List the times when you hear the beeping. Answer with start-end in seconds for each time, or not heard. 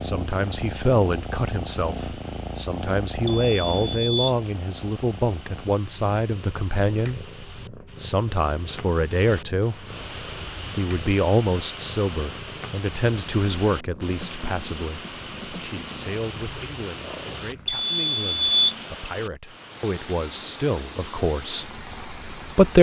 3.2-4.3, 17.6-18.8.